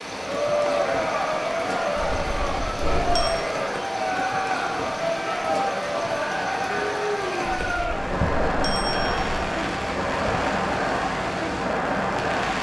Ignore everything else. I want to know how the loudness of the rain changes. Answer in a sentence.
The loudness of the rain stays about the same.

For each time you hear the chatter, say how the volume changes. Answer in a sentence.
The chatter can be heard from 0.1 to 12.5 s, at a steady volume.